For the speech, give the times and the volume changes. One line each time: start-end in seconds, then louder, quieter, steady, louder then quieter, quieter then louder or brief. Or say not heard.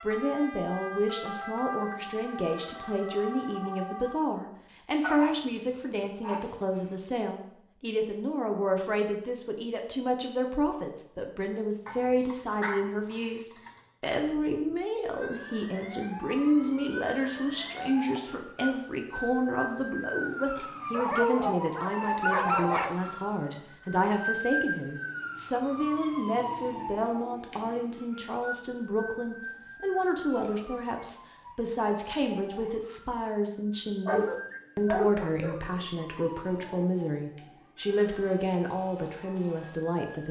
0.0-40.2 steady.